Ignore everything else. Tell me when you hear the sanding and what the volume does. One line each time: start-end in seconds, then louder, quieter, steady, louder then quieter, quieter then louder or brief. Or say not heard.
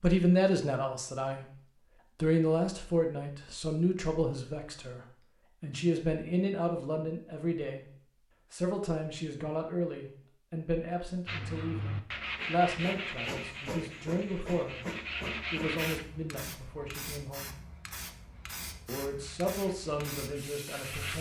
11.2-16.1 quieter then louder
19.1-21.1 brief.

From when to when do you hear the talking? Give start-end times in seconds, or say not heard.
0.0-17.5, 18.9-21.1.